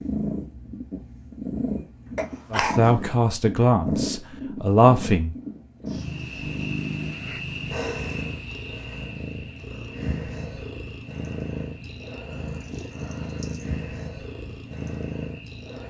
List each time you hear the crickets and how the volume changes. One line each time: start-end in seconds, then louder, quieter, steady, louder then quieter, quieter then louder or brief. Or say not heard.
6.0-15.8 quieter.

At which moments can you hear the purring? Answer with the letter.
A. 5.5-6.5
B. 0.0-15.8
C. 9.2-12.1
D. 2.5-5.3
B.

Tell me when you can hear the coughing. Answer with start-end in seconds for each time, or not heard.
2.1-3.1.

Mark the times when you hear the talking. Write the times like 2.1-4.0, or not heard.
2.5-5.3.